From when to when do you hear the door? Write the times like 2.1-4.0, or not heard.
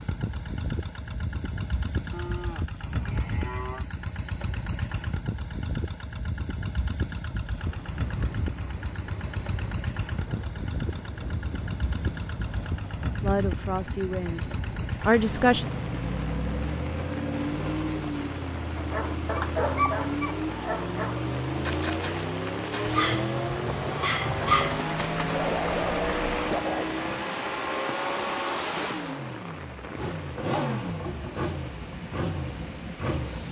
not heard.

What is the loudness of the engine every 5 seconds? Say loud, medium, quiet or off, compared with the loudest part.
medium, medium, medium, loud, loud, loud, loud.